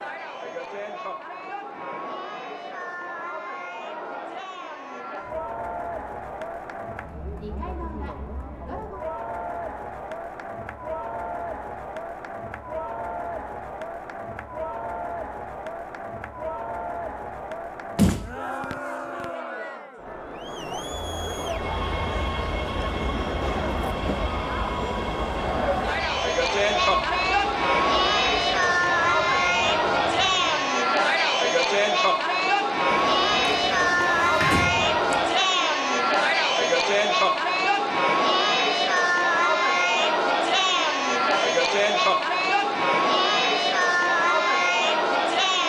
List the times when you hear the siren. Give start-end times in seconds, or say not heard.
not heard.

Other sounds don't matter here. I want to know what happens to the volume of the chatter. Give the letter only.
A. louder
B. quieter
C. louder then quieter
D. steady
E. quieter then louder
A.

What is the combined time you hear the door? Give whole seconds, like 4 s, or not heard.
4 s.